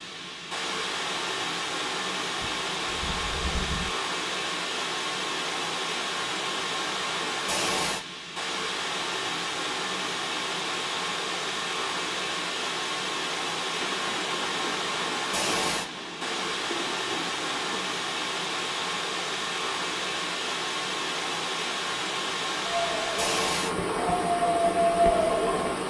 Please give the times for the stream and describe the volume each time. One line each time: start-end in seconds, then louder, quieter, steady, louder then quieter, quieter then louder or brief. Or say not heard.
0.0-25.8 steady.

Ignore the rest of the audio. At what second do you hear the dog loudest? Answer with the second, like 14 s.
25 s.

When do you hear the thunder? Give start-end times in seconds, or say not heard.
2.4-3.9, 13.8-17.8.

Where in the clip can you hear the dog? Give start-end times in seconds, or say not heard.
22.6-25.8.